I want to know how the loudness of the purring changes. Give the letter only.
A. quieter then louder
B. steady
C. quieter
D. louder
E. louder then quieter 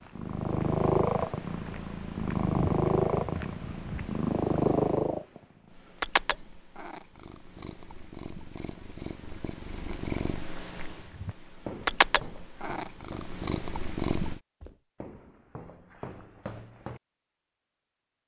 A.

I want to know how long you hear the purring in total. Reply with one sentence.
The purring can be heard for 14 seconds in total.